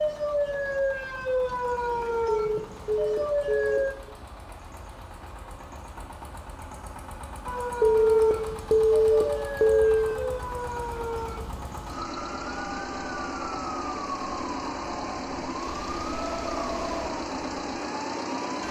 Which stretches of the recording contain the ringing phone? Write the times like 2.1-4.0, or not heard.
2.2-4.1, 7.8-10.2, 15.6-17.1.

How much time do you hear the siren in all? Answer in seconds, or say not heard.
15 s.